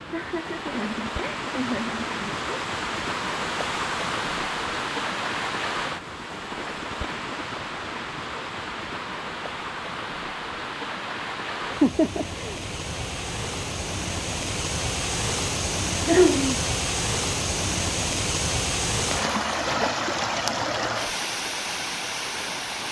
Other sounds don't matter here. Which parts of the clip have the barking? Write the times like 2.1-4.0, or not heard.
not heard.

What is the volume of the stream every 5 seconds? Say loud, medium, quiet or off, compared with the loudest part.
loud, medium, medium, loud, loud.